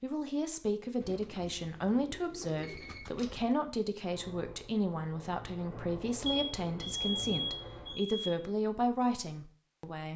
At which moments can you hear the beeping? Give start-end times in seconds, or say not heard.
2.6-3.3, 6.2-8.2.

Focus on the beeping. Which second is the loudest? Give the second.
7 s.